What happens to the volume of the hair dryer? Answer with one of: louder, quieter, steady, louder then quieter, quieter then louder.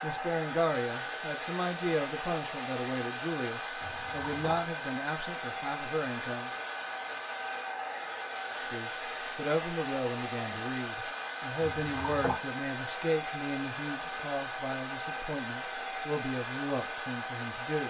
steady.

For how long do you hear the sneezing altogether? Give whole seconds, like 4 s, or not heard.
2 s.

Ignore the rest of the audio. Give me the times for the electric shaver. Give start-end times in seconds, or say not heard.
not heard.